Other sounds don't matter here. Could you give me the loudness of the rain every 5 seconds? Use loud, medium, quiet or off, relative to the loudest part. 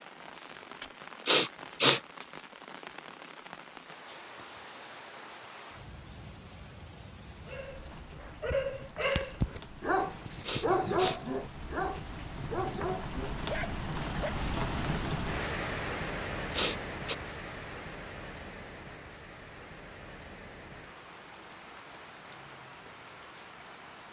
medium, medium, loud, loud, medium.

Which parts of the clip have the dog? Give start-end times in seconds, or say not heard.
7.5-14.4.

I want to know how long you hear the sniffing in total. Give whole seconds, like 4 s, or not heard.
2 s.